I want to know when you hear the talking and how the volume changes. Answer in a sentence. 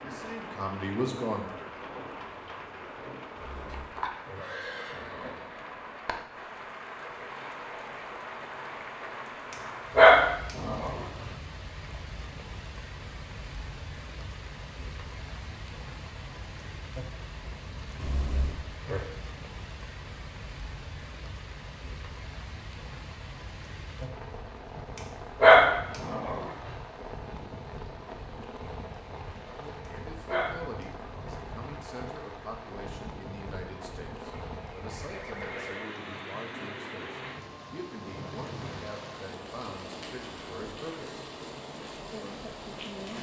You can hear the talking briefly from 0.0 to 1.8 s; from 29.4 to 41.2 s, at a steady volume; and briefly from 42.1 to 43.1 s.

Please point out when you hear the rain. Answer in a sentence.
The rain can be heard from 0.0 to 43.1 s.